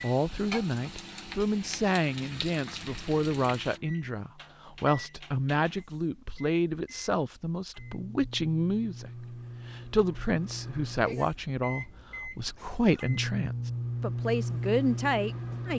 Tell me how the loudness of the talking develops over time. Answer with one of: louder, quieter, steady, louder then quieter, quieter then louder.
steady.